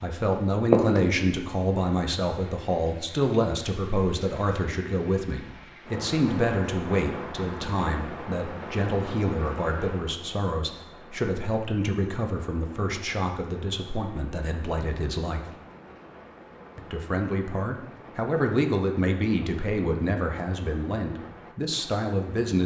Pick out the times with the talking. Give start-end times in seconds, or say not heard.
0.0-15.4, 16.8-22.6.